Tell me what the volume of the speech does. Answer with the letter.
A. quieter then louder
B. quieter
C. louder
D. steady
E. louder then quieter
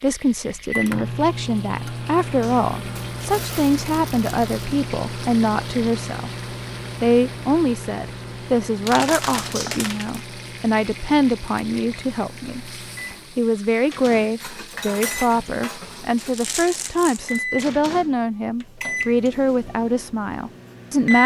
D.